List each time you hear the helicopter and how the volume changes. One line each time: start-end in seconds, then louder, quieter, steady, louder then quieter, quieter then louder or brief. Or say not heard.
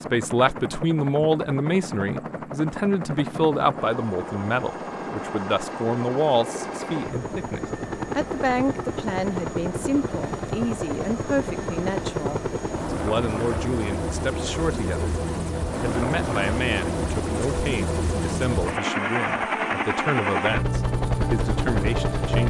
0.0-22.4 louder.